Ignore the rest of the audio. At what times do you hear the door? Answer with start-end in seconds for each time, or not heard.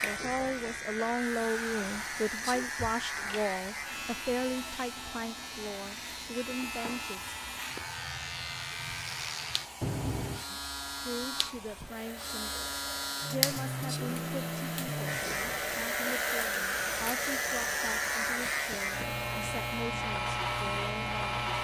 2.8-3.5, 9.8-10.4, 18.4-19.1.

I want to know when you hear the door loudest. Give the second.
10 s.